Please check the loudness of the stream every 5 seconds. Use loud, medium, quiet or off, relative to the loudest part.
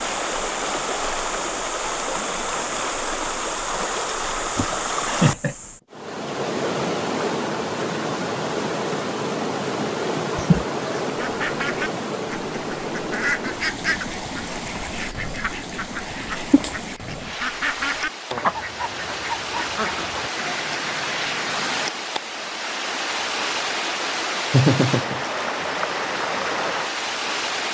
loud, loud, loud, medium, loud, loud.